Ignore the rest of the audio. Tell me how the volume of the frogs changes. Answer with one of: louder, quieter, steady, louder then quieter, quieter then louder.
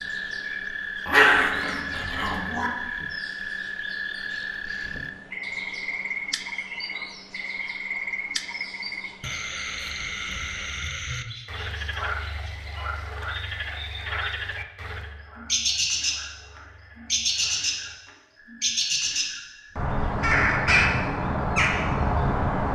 quieter.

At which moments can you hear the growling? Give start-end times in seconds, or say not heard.
1.1-2.7.